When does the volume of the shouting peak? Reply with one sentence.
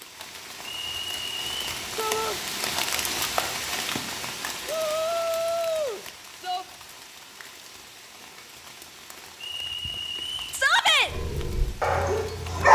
The volume of the shouting peaks at 11 seconds.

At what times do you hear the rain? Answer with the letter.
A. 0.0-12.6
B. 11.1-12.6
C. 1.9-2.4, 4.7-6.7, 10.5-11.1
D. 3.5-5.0
A.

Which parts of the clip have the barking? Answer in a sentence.
The barking can be heard from 11.1 to 12.6 s.